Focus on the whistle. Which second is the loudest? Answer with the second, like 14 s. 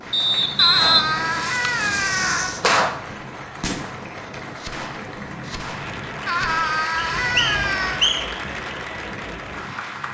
1 s.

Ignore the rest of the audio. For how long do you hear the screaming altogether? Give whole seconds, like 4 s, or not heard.
4 s.